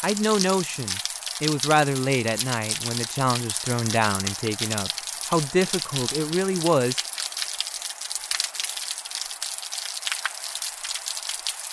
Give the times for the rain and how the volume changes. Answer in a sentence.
The rain can be heard from 0.0 to 11.6 s, at a steady volume.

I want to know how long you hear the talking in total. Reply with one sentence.
You can hear the talking for 7 seconds altogether.